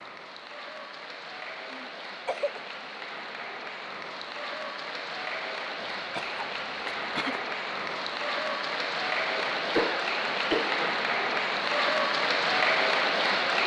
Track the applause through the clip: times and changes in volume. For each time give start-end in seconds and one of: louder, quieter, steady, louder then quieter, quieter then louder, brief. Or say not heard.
0.0-13.6 louder.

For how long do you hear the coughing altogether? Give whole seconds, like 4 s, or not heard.
4 s.